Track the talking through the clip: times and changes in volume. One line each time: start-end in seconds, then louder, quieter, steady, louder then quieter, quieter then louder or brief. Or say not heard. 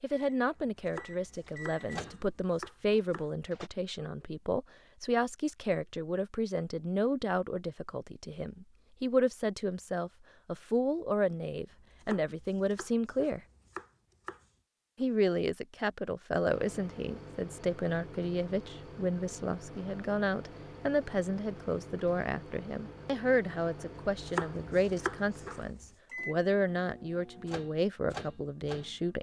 0.0-13.4 steady
14.9-29.1 steady.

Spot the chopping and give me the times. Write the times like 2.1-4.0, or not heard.
0.6-3.2, 11.7-14.4, 24.1-25.9.